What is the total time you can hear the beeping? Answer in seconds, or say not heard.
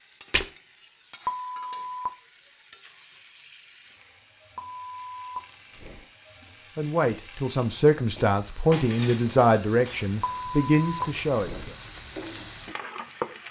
4 s.